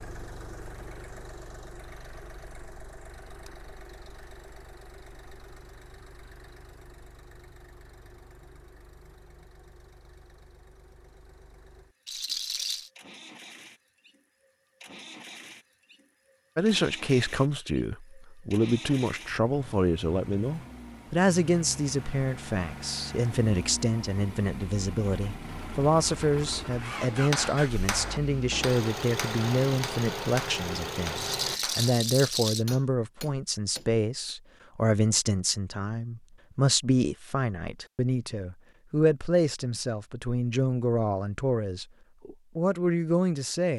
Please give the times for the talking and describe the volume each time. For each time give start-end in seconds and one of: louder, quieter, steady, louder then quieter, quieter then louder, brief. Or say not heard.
16.6-43.7 steady.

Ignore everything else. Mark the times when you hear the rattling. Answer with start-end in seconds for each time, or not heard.
12.1-12.9, 31.1-32.6.